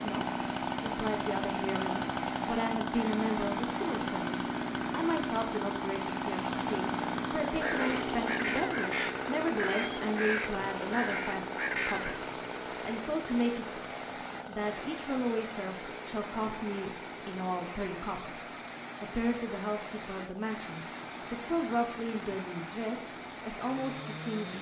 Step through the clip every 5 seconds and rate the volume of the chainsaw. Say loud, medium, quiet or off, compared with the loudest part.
loud, loud, medium, quiet, quiet.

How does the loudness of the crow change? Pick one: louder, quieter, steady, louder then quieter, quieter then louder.
steady.